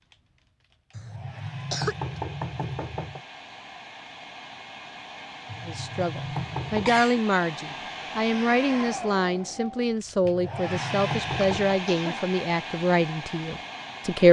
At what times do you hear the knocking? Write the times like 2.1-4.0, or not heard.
0.9-3.2, 5.5-7.0, 10.2-11.8.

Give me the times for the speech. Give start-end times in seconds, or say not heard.
5.7-14.2.